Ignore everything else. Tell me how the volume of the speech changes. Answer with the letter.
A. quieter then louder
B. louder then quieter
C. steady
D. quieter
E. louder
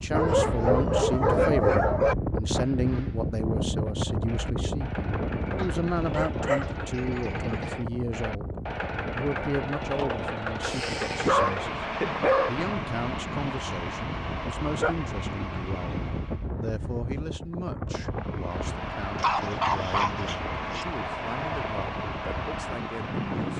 D.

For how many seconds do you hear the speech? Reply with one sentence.
You can hear the speech for 23 seconds altogether.